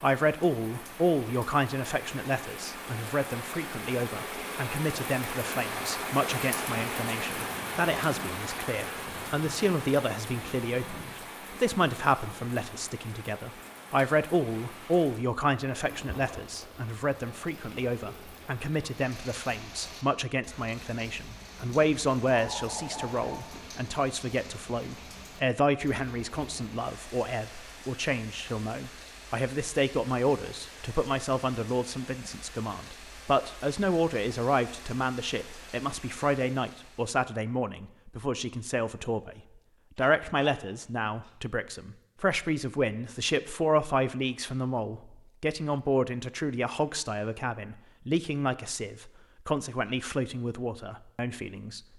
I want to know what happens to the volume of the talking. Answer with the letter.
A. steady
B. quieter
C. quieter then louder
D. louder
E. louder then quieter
A.